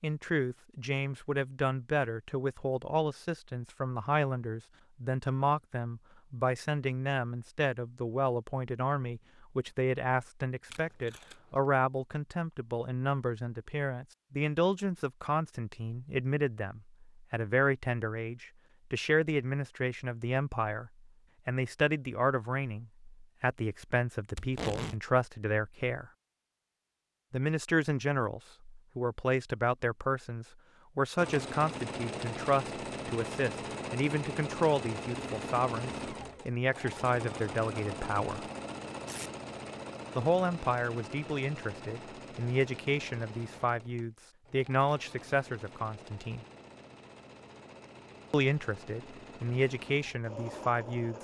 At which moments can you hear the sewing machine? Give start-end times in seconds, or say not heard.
31.1-51.2.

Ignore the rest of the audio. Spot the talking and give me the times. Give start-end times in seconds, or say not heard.
0.0-26.1, 27.3-38.5, 40.1-46.5, 48.3-51.1.